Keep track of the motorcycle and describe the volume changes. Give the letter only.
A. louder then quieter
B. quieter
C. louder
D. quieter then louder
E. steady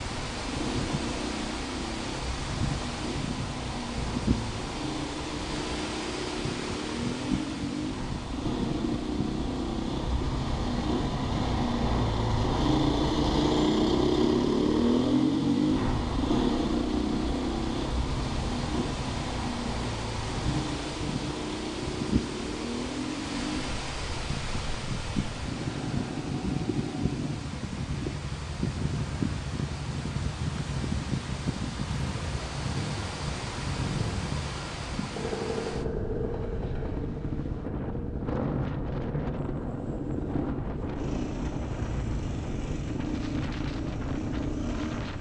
A.